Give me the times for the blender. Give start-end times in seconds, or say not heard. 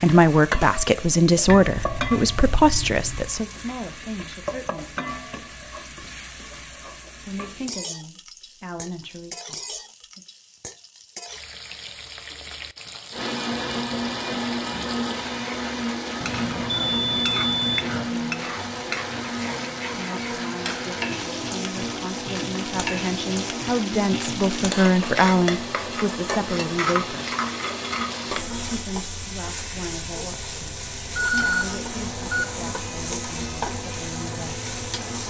13.1-28.9, 31.3-35.2.